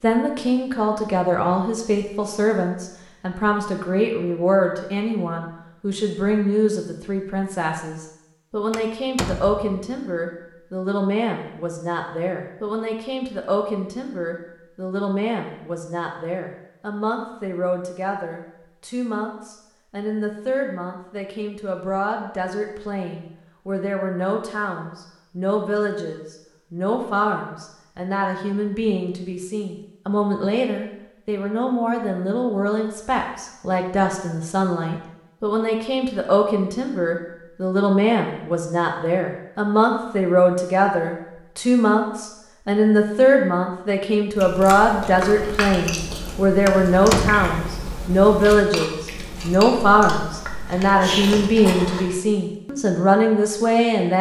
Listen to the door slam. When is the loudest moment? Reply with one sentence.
The loudest moment of the door slam is at 47 seconds.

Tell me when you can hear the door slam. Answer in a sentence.
You can hear the door slam from 8.7 to 9.8 s and from 46.6 to 47.5 s.